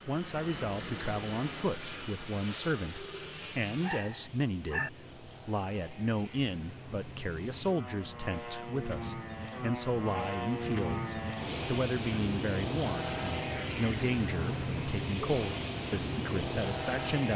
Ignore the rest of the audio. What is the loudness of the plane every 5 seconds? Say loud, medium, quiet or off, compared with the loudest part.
medium, medium, loud, loud.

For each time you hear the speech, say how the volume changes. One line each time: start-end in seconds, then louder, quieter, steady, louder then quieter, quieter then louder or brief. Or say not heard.
0.1-17.3 steady.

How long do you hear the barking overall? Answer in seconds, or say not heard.
2 s.